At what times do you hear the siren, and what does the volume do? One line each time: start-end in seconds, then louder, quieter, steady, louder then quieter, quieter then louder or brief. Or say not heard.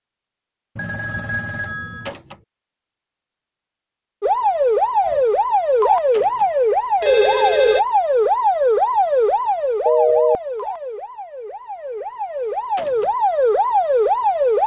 4.2-14.6 quieter then louder.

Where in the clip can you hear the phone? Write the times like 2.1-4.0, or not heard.
0.8-2.1, 7.0-7.8, 9.8-10.3.